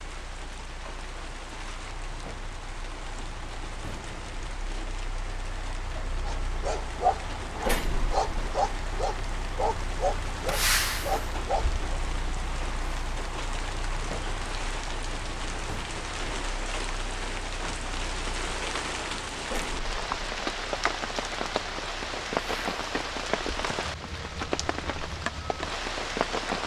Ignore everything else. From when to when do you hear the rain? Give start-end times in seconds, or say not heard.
0.0-26.6.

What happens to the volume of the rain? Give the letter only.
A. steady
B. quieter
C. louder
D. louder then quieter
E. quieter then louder
C.